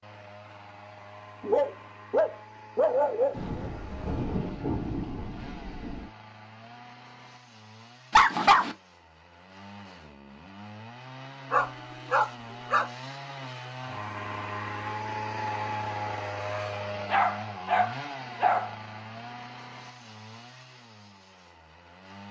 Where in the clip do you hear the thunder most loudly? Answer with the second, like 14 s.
5 s.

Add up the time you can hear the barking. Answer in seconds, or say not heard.
6 s.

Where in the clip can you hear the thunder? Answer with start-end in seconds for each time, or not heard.
3.3-6.1.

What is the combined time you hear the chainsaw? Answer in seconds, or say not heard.
22 s.